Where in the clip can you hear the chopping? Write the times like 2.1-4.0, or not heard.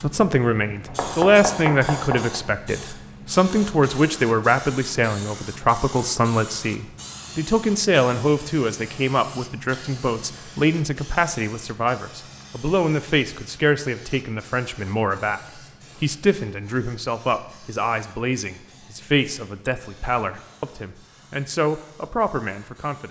0.8-2.4.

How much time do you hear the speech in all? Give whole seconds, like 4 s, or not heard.
23 s.